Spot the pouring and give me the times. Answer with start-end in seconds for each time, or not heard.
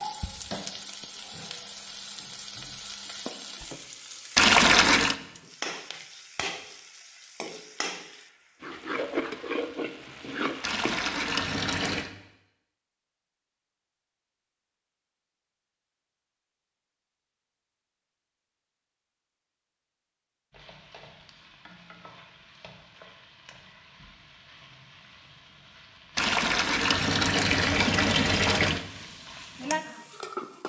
4.3-5.2, 10.6-12.1, 26.1-28.9.